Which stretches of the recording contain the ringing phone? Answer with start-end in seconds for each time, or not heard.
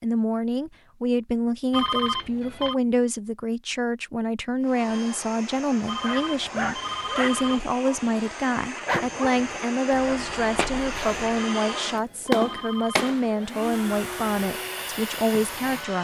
1.7-2.8, 5.8-7.6, 11.3-13.2.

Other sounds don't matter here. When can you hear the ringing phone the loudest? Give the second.
2 s.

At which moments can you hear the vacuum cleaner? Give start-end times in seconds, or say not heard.
4.6-15.9.